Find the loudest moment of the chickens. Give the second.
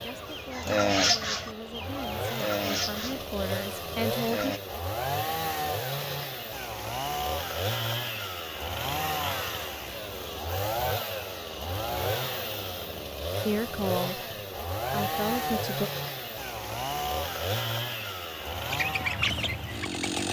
1 s.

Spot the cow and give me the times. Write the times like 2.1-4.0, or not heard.
not heard.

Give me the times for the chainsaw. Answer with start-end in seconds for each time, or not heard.
0.0-20.2.